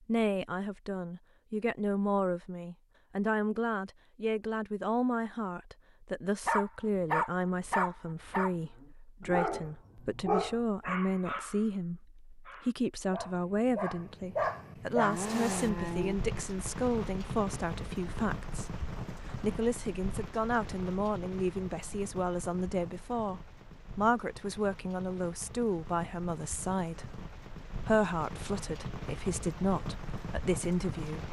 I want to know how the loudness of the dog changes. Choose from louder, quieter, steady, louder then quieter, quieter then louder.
quieter then louder.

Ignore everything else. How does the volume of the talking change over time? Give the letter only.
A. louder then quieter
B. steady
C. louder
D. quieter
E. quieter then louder
B.